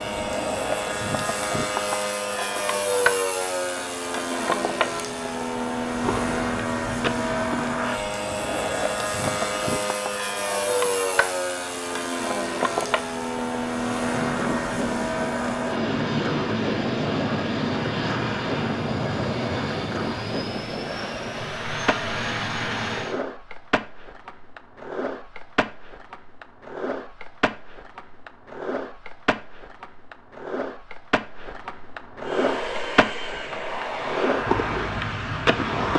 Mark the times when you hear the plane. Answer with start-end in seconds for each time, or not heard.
0.0-23.2, 32.2-35.9.